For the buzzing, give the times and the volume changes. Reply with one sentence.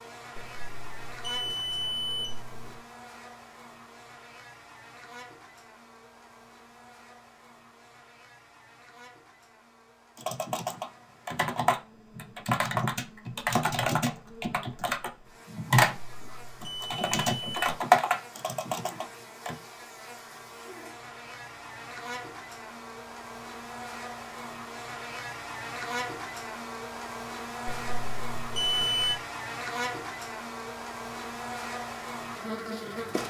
You can hear the buzzing from 0.0 to 33.2 s, getting quieter then louder.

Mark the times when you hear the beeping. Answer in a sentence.
You can hear the beeping from 0.3 to 2.8 s, from 15.9 to 17.8 s and from 27.6 to 29.1 s.